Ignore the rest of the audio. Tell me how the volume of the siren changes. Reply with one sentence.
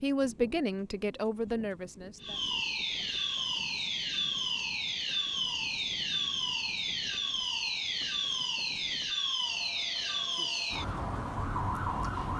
The volume of the siren stays about the same.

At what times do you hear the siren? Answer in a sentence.
You can hear the siren from 2.2 to 12.3 s.